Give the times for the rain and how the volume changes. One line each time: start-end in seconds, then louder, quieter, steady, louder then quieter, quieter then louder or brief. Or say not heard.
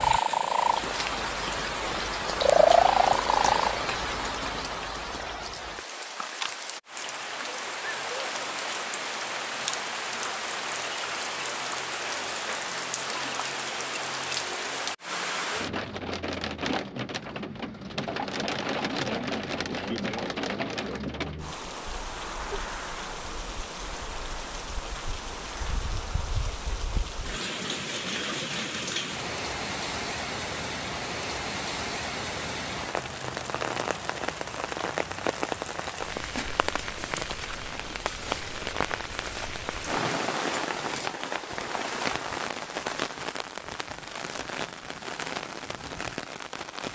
0.0-46.8 steady.